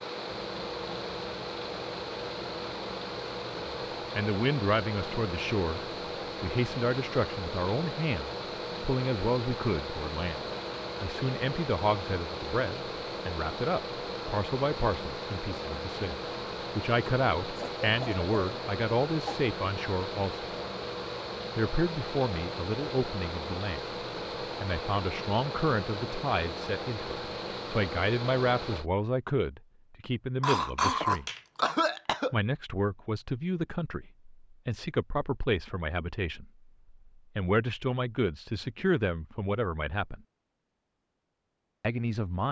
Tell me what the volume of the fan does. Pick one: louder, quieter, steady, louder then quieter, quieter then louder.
steady.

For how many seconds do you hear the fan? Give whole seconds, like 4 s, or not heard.
29 s.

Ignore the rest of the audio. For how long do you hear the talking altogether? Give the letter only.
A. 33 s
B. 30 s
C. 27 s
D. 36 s
A.